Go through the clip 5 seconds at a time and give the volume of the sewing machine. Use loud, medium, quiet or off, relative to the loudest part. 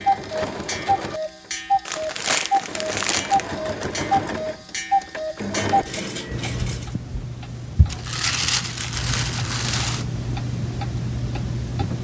loud, loud, off.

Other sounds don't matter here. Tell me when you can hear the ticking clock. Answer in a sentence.
The ticking clock can be heard from 0.0 to 11.9 s.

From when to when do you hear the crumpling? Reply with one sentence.
The crumpling can be heard from 1.9 to 3.5 s and from 7.8 to 10.1 s.